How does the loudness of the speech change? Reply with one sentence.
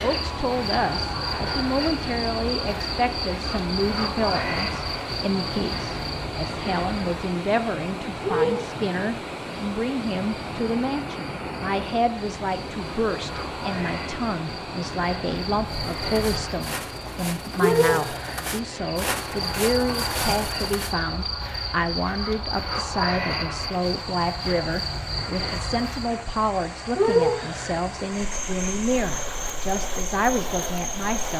The volume of the speech stays about the same.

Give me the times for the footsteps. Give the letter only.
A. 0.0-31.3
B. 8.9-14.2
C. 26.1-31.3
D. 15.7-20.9
D.